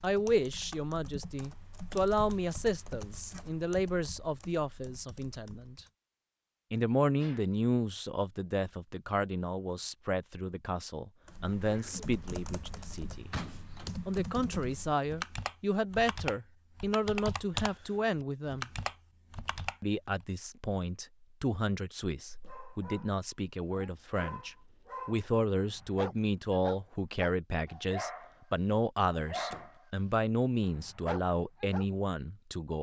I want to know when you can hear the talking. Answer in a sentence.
The talking can be heard from 0.0 to 5.8 s, from 6.7 to 13.3 s, from 14.1 to 18.7 s and from 19.8 to 32.7 s.